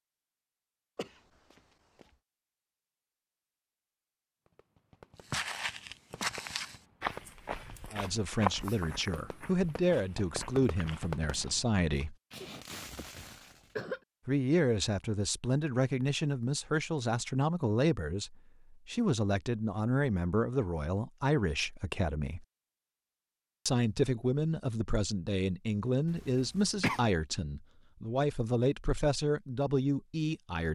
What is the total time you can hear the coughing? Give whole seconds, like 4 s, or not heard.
4 s.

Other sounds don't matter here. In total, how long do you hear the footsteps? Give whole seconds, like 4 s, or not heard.
6 s.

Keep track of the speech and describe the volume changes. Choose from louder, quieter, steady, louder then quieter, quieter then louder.
steady.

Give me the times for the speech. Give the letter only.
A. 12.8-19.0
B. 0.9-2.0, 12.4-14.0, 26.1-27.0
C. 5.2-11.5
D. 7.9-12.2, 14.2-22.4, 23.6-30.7
D.